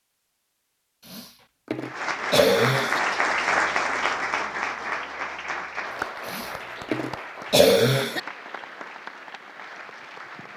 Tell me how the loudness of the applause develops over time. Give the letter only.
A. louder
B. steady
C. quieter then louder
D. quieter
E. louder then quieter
D.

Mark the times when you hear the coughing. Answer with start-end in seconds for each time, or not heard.
1.1-3.0, 6.2-8.2.